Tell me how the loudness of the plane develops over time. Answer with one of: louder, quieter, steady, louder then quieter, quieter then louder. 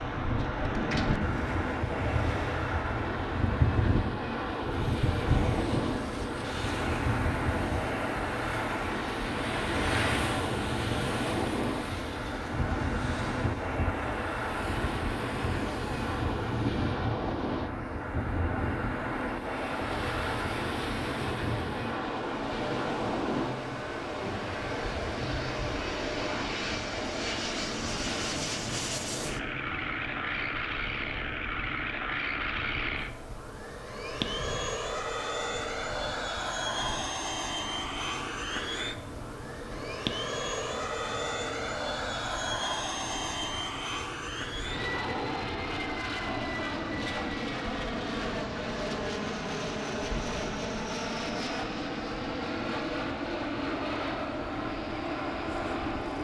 steady.